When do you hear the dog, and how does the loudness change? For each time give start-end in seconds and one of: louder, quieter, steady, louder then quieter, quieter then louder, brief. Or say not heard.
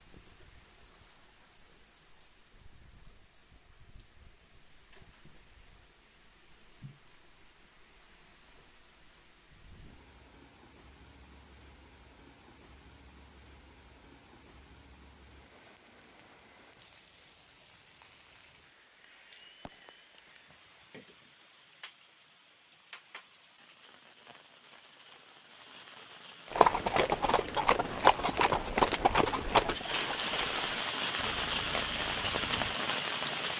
not heard.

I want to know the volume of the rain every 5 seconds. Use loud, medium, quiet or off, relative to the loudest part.
quiet, quiet, quiet, quiet, quiet, quiet, loud.